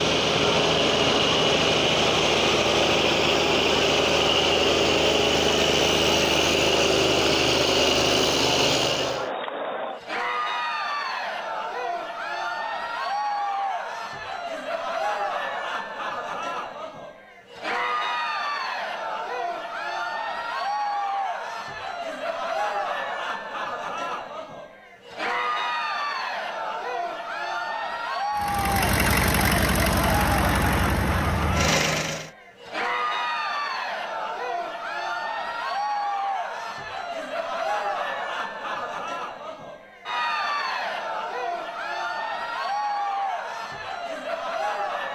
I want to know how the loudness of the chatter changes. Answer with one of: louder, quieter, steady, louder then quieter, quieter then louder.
steady.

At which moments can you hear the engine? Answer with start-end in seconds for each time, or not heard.
0.0-9.3, 28.4-32.3.